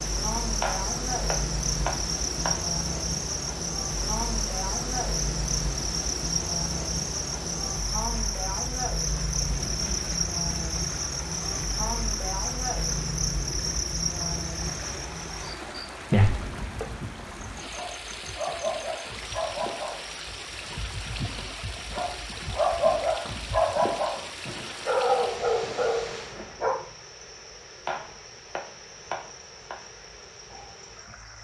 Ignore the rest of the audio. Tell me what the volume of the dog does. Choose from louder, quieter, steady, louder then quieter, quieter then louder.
louder.